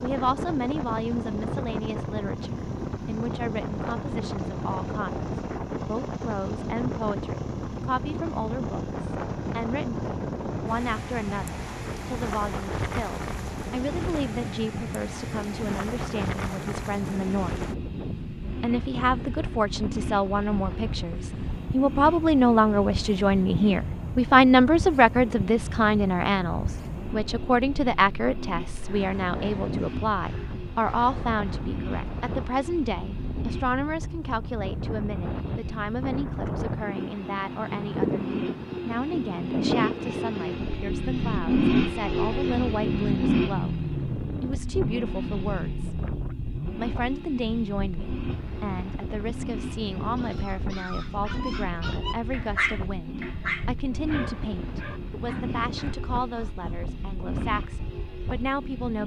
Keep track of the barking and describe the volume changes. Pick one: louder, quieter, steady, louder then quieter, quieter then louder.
louder then quieter.